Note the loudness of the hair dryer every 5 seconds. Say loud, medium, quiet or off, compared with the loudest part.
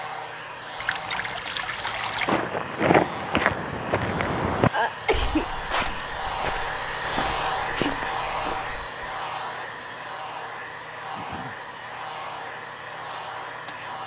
medium, loud, medium.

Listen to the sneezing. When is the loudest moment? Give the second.
5 s.